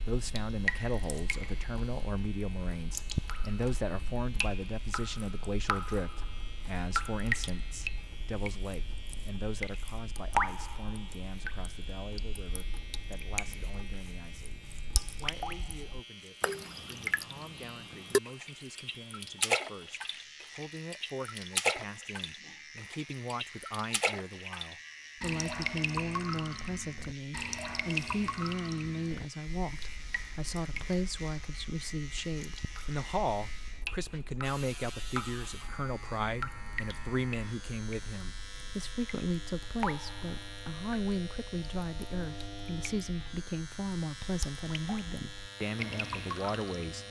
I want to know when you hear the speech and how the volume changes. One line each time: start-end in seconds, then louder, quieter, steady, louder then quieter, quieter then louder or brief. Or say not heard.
0.1-47.0 quieter then louder.